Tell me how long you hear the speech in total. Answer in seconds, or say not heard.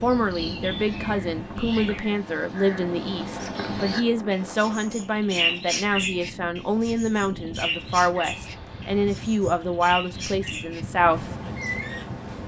11 s.